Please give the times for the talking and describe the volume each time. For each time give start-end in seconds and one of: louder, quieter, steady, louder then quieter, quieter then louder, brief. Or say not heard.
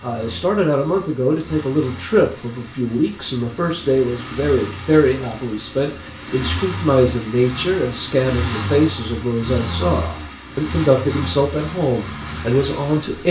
0.0-13.2 steady.